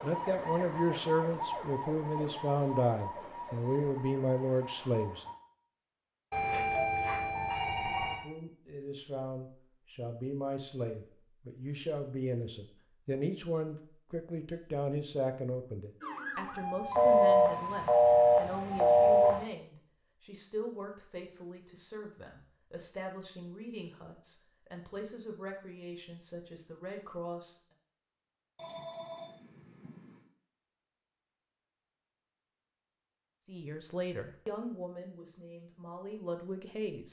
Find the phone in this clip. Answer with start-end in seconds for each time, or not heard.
6.3-8.2, 16.9-19.4, 28.6-30.2.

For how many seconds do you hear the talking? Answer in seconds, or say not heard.
28 s.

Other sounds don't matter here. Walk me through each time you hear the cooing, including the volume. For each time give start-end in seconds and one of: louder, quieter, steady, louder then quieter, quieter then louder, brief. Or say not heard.
not heard.